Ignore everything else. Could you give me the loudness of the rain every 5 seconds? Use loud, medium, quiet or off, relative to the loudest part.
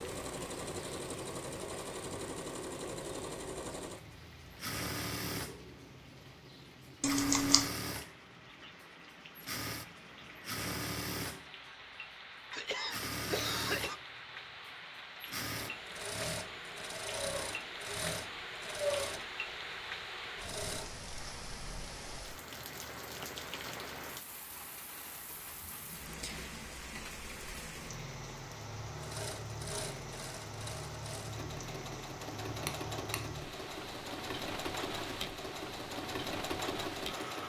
medium, medium, medium, loud, loud, loud, loud, loud.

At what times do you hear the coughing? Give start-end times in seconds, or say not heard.
12.5-14.0.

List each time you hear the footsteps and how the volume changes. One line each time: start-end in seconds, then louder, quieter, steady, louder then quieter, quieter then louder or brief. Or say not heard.
not heard.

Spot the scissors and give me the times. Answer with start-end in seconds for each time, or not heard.
7.0-7.7, 32.6-33.5.